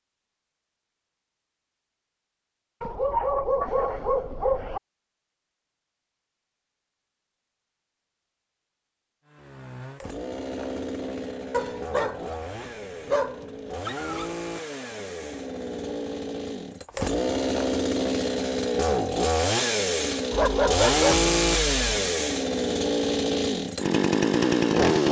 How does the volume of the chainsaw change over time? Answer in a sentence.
The volume of the chainsaw goes up.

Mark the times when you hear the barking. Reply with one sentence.
The barking can be heard from 2.8 to 4.8 s, from 11.5 to 14.2 s and from 20.3 to 21.9 s.